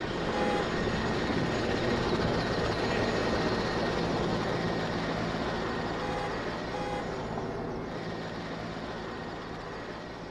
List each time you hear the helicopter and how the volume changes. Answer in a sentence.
You can hear the helicopter from 0.0 to 10.2 s, getting quieter.